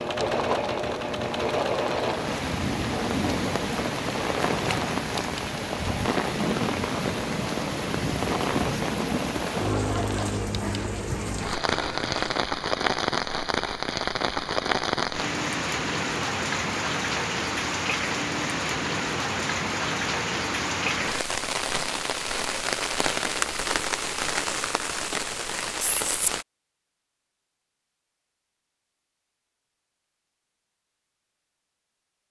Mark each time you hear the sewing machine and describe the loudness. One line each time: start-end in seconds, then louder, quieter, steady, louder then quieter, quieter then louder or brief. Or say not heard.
0.0-12.5 quieter.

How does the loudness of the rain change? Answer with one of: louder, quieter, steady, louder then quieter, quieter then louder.
steady.